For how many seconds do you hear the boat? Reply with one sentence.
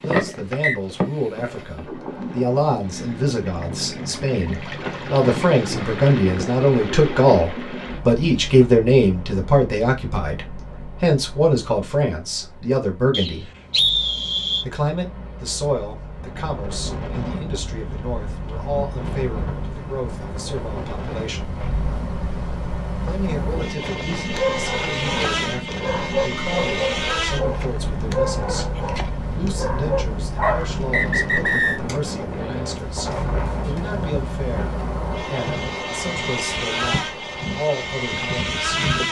You can hear the boat for 39 seconds altogether.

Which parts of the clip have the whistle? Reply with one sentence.
The whistle can be heard from 0.1 to 0.8 s, from 13.1 to 14.7 s and from 30.4 to 31.8 s.